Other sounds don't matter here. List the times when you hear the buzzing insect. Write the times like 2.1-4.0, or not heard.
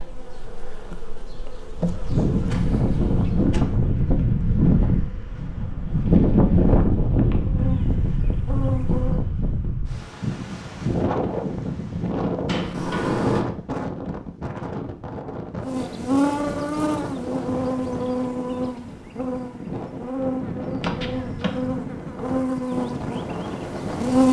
0.0-9.2, 15.6-24.2.